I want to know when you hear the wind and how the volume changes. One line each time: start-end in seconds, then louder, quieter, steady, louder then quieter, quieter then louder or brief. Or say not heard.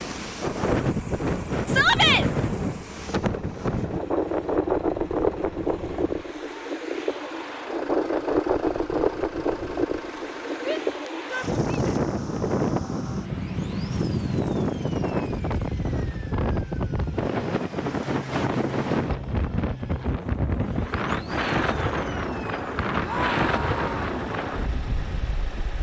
0.0-25.7 steady.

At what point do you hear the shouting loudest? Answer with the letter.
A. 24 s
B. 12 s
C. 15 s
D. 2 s
D.